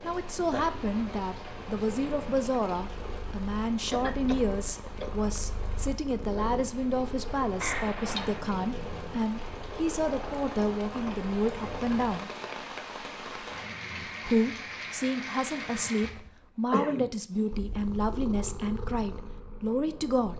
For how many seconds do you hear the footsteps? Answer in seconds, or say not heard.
not heard.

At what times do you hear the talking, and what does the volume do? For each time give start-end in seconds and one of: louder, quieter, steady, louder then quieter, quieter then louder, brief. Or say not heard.
0.0-12.3 steady
14.2-20.3 steady.